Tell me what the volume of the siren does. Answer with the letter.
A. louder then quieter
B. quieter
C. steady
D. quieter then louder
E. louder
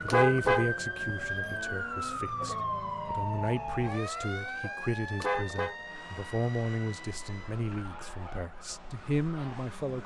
B.